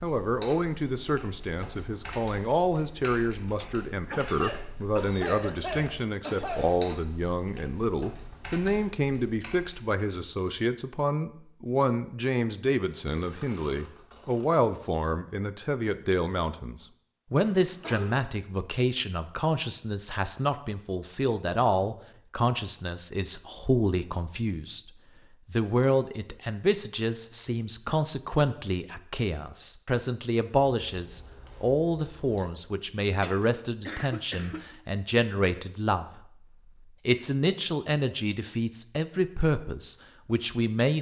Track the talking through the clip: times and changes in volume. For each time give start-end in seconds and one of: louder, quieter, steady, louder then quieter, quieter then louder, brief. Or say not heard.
0.0-24.9 steady
25.5-40.9 steady.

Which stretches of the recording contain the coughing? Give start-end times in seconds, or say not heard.
4.0-6.8, 17.4-18.2, 33.2-34.6.